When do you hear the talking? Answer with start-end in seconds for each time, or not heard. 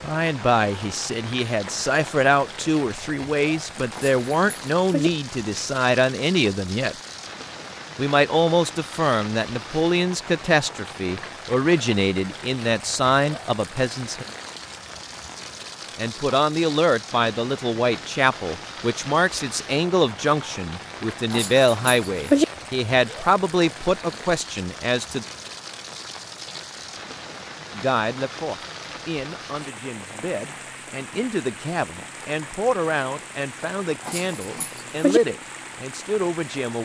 0.0-7.0, 8.0-14.2, 15.9-25.2, 27.8-36.8.